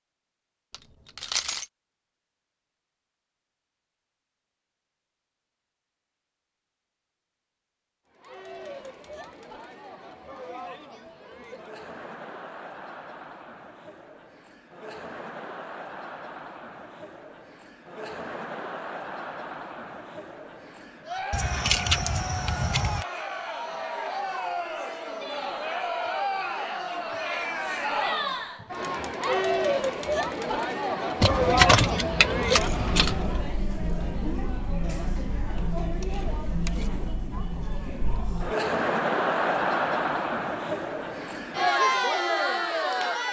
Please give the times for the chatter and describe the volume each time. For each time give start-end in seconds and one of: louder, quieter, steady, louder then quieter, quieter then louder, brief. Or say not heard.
8.1-43.2 louder.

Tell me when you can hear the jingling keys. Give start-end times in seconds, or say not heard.
0.7-1.6, 21.3-23.1, 31.2-33.5.